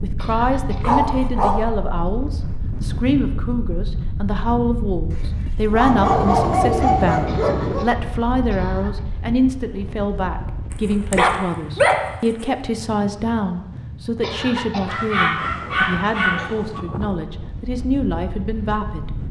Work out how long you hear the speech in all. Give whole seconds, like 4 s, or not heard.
19 s.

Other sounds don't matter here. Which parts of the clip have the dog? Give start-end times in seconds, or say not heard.
0.8-1.6, 5.1-7.8, 10.7-12.4, 14.8-16.8.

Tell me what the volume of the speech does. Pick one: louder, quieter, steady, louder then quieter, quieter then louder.
steady.